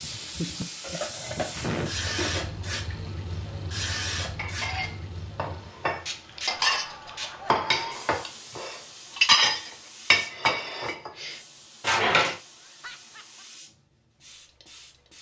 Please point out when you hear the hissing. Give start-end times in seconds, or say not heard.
0.0-15.1.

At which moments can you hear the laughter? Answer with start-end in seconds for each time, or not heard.
0.1-1.0, 6.7-8.1, 12.5-13.4.